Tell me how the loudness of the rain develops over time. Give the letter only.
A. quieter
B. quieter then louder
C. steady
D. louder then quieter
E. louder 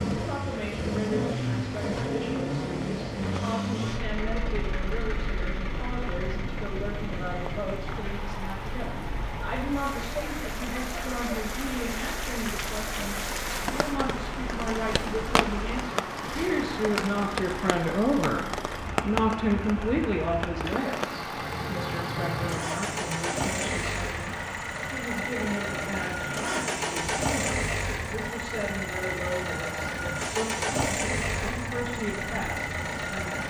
D.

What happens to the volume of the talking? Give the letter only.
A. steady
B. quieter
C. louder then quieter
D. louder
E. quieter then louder
C.